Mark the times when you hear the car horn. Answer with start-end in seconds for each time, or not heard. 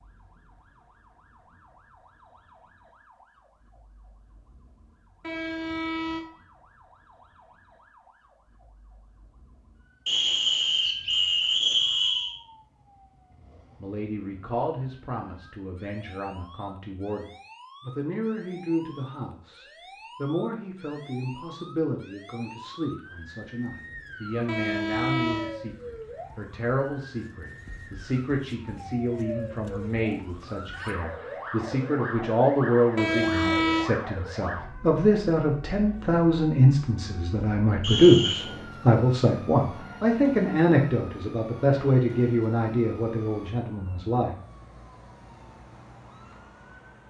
5.2-6.2, 24.4-25.6, 33.0-33.9.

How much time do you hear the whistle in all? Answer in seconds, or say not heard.
3 s.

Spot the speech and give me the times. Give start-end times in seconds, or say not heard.
13.8-44.4.